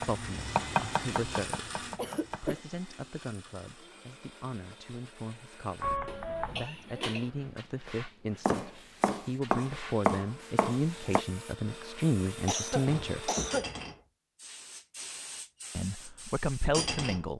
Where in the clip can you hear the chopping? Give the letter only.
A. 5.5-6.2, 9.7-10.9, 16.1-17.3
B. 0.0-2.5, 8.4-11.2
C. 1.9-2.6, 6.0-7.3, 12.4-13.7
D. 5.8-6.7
B.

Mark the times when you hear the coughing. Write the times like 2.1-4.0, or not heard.
1.9-2.6, 6.0-7.3, 12.4-13.7.